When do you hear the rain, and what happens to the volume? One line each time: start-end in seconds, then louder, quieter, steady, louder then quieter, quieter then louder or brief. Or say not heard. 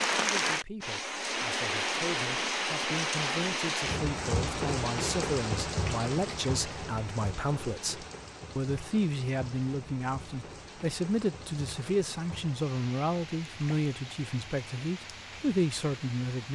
0.0-16.5 quieter.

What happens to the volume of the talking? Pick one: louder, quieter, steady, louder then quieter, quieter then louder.
louder.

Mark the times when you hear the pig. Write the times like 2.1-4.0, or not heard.
not heard.